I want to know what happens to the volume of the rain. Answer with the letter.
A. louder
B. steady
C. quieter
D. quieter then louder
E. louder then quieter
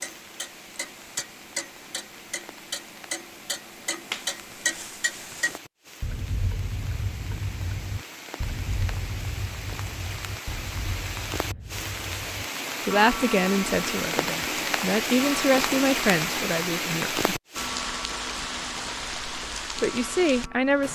A.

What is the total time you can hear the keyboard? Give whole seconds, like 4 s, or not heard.
not heard.